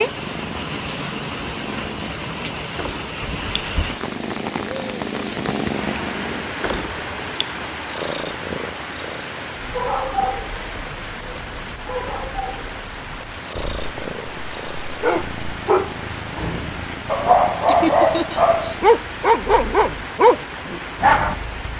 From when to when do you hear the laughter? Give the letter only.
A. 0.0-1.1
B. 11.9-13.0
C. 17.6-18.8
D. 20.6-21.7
C.